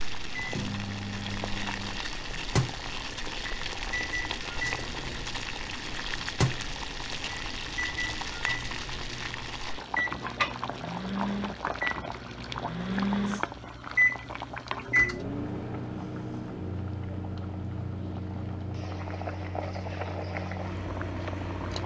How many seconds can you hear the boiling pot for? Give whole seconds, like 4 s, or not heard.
22 s.